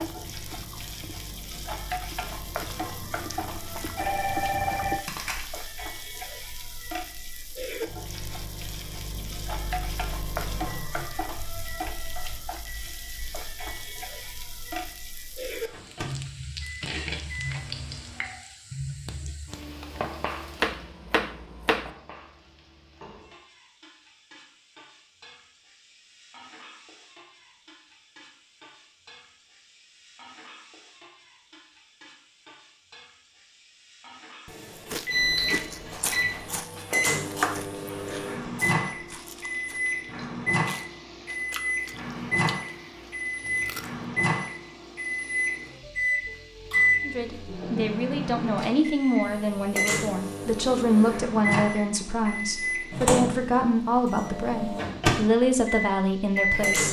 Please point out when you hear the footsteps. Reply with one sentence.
You can't hear the footsteps here.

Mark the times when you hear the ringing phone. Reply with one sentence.
You can hear the ringing phone from 3.6 to 5.5 s and from 34.5 to 35.1 s.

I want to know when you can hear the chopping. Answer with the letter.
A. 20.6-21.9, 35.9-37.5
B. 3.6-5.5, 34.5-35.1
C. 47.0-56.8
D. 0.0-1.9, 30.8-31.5
A.